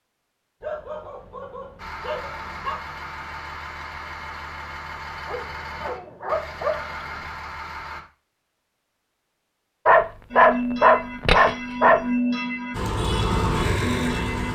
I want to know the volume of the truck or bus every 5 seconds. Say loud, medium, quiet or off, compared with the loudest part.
medium, medium, loud.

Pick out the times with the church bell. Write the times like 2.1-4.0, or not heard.
10.3-14.5.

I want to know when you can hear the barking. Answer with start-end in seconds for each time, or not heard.
0.6-2.8, 5.2-7.2, 9.8-12.0.